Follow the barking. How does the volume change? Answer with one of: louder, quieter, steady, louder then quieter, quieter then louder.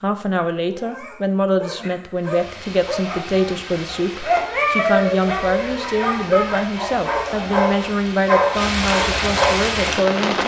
louder.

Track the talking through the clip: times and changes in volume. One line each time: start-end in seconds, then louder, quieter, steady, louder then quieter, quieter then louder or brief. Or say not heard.
0.0-10.4 steady.